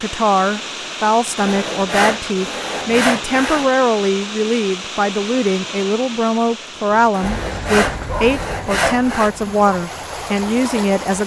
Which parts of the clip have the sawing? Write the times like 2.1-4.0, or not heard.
1.4-3.7, 7.1-9.3.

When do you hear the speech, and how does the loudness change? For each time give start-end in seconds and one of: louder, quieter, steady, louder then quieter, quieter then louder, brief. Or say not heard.
0.0-11.2 steady.